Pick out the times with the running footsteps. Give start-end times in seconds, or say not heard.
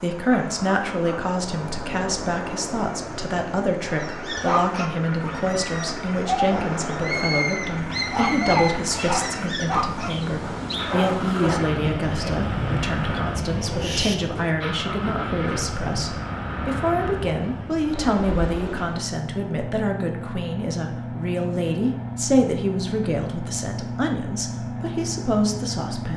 not heard.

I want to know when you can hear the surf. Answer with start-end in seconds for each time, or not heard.
0.0-19.1.